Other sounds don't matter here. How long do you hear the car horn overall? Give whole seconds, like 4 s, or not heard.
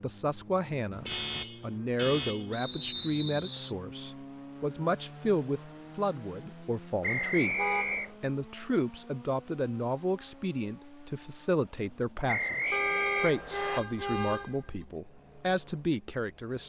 4 s.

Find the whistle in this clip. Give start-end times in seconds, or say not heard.
2.5-3.8, 7.0-8.1, 12.2-13.8.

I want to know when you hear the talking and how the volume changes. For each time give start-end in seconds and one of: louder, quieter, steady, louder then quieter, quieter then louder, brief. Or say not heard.
0.0-16.6 steady.